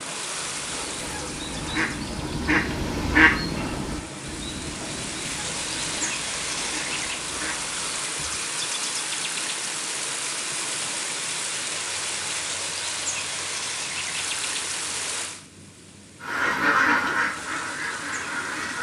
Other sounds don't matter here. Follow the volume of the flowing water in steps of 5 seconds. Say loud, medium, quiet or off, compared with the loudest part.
medium, loud, loud, medium.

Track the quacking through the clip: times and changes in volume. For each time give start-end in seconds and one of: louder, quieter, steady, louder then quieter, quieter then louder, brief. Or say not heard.
0.6-8.0 louder then quieter
16.2-18.7 brief.